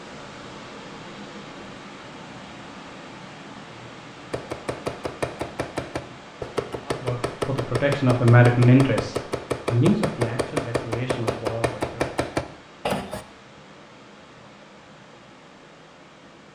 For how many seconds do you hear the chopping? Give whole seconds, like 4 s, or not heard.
9 s.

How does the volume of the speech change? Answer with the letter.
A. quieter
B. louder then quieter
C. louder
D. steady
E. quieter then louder
B.